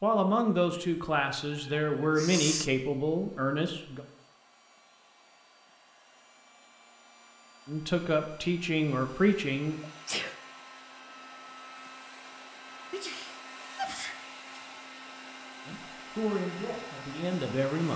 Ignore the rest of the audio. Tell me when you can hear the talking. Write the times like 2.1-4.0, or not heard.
0.0-4.0, 7.7-9.8, 15.7-17.9.